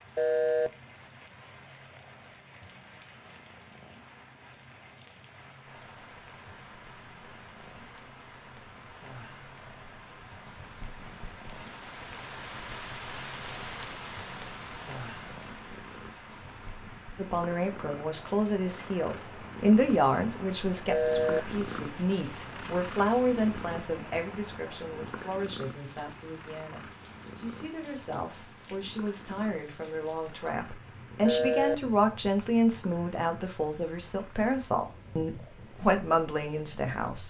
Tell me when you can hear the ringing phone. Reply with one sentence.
The ringing phone can be heard from 0.1 to 0.7 s, from 20.9 to 21.4 s and from 31.2 to 31.8 s.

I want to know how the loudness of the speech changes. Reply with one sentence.
The loudness of the speech goes down, then up.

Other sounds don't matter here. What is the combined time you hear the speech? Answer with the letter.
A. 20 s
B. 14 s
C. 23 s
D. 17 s
A.